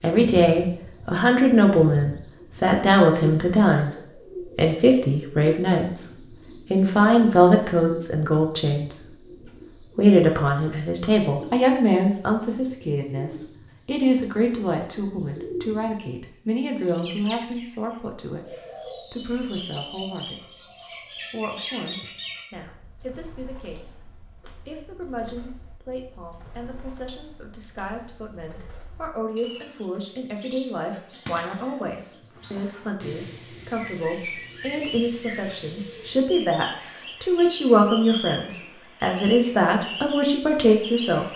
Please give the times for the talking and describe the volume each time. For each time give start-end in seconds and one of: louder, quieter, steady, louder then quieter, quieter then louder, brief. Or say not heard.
0.0-9.2 steady
9.9-20.6 quieter
21.3-23.9 brief
24.6-41.2 louder.